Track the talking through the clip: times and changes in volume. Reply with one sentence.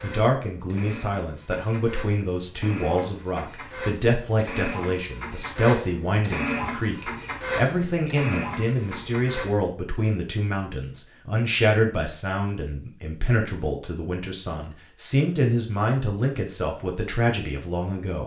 You can hear the talking from 0.0 to 18.2 s, at a steady volume.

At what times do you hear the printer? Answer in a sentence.
You can hear the printer from 0.0 to 9.6 s.